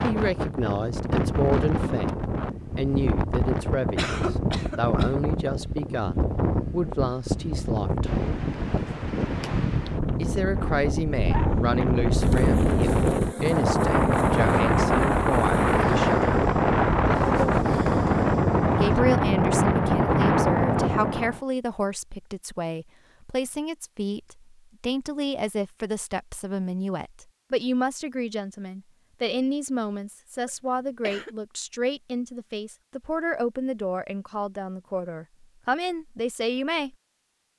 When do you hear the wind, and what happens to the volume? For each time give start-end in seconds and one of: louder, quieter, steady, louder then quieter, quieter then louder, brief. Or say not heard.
0.0-21.4 louder.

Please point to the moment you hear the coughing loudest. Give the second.
4 s.